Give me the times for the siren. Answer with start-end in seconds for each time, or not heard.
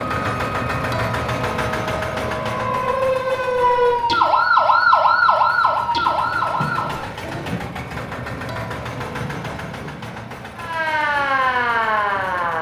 0.2-7.0, 10.6-12.5.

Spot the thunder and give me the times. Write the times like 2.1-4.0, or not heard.
6.5-10.2.